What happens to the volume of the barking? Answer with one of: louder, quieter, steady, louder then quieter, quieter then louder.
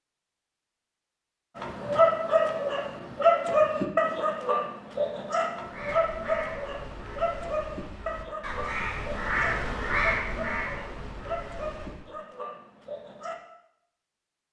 quieter.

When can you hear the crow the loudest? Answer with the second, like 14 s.
10 s.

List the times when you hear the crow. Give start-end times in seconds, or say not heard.
5.7-12.1.